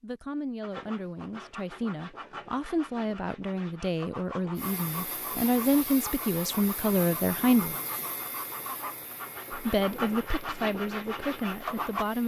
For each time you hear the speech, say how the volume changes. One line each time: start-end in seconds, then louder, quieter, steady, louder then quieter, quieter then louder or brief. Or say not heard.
0.0-7.8 louder
9.5-12.2 brief.